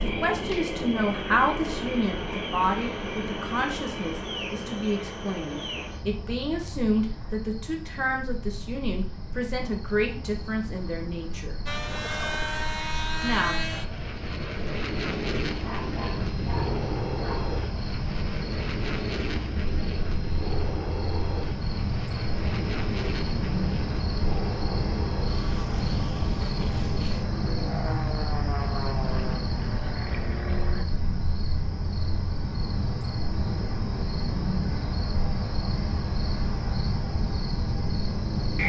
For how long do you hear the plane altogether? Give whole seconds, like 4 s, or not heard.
19 s.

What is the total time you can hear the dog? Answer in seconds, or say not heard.
2 s.